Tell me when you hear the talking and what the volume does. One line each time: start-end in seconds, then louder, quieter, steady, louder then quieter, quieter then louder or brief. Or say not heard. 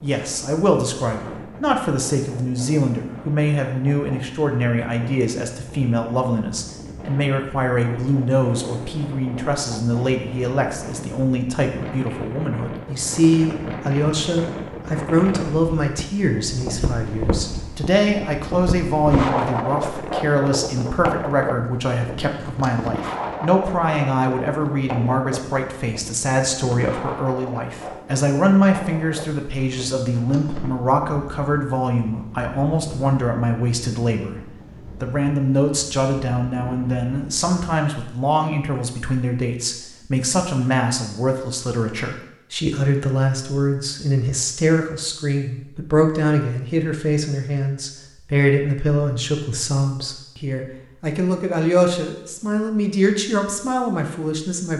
0.0-54.7 steady.